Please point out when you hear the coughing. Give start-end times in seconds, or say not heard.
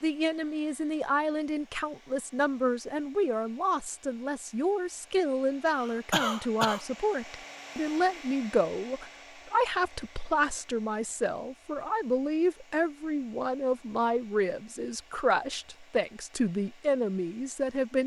5.7-6.8.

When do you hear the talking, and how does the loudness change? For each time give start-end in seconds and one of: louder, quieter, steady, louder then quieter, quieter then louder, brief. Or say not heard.
0.0-18.0 steady.